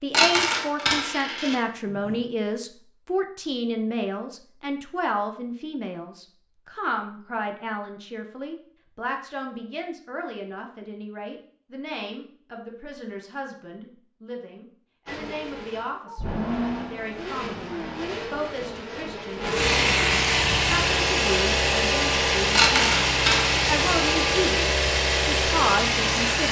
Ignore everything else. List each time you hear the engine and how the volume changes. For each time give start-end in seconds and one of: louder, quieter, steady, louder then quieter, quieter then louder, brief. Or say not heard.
15.1-26.4 louder.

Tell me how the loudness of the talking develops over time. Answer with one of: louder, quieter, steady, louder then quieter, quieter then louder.
quieter then louder.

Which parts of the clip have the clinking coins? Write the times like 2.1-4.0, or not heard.
0.1-2.2, 22.6-23.6.